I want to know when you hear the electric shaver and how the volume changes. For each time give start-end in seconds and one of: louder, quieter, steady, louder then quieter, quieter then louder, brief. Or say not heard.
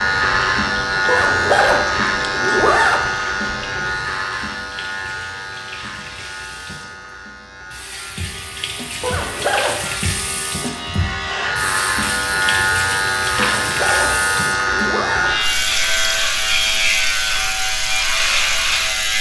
0.0-19.1 quieter then louder.